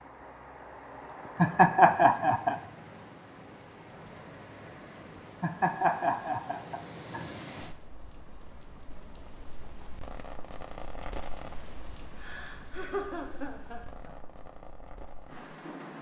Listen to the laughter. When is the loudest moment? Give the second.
2 s.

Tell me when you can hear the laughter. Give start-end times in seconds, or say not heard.
1.4-2.5, 5.4-7.3, 12.2-14.2.